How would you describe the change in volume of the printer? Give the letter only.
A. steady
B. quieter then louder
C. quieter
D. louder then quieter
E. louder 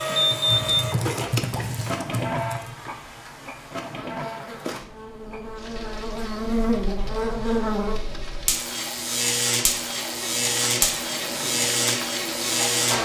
B.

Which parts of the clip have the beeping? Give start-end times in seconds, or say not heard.
0.2-0.8.